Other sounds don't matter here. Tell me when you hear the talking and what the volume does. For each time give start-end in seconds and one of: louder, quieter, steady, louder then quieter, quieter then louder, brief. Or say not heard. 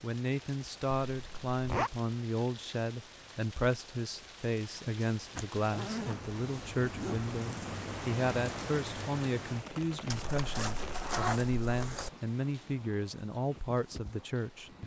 0.0-14.8 steady.